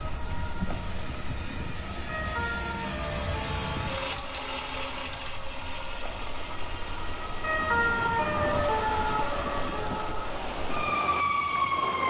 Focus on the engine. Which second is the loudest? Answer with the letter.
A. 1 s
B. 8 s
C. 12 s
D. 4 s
D.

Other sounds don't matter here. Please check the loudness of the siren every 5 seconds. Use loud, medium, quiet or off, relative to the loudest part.
medium, loud, loud.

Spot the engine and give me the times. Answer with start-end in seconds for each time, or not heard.
0.0-12.0.